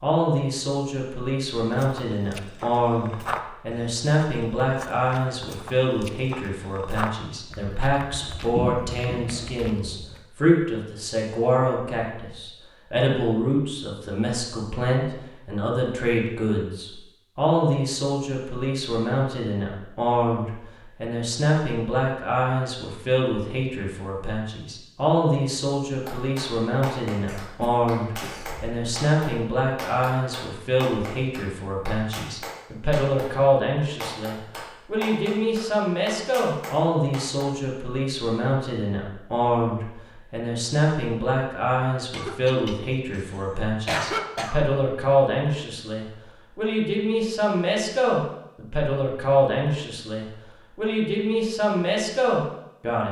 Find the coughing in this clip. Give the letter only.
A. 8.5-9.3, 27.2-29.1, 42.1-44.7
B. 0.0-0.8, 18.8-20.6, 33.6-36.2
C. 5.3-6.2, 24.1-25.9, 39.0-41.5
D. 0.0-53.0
A.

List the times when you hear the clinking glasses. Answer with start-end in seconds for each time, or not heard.
not heard.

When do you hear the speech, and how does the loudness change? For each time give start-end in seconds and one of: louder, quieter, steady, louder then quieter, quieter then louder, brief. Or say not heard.
0.0-53.0 steady.